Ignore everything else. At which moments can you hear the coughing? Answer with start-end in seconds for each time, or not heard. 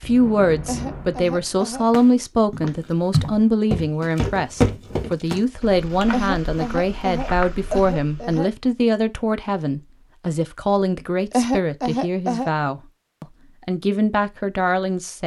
0.7-1.9, 6.1-8.5, 11.3-12.5.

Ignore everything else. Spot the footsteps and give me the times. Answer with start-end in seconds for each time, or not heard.
2.5-8.4.